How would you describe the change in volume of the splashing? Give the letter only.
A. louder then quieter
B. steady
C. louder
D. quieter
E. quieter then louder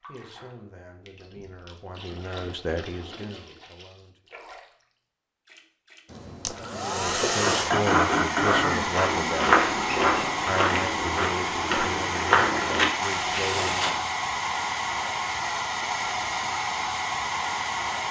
A.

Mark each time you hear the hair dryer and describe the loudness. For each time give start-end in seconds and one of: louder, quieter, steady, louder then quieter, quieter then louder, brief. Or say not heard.
6.1-18.0 steady.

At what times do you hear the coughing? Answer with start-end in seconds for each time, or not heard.
7.1-8.8.